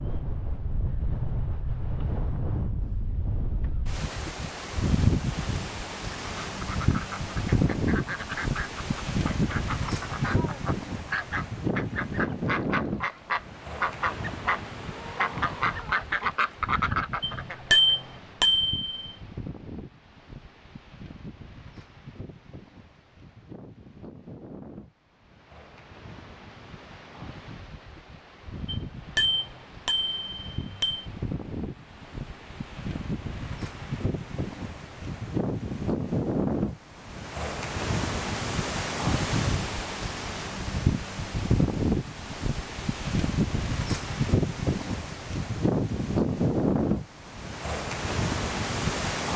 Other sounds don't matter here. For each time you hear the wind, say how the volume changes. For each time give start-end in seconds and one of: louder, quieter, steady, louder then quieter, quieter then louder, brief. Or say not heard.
0.0-49.3 quieter then louder.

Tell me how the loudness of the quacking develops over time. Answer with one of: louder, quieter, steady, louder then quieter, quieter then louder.
louder.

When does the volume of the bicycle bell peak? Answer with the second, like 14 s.
18 s.